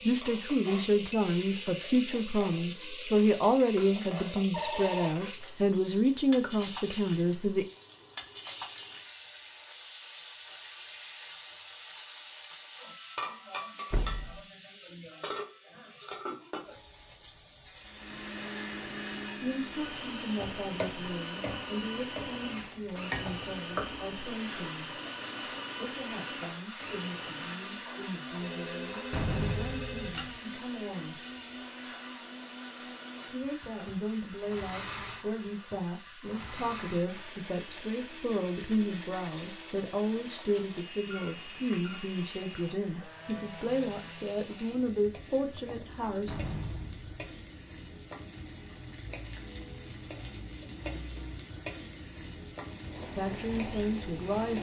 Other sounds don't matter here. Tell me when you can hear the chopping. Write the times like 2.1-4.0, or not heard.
not heard.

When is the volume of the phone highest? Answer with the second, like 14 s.
5 s.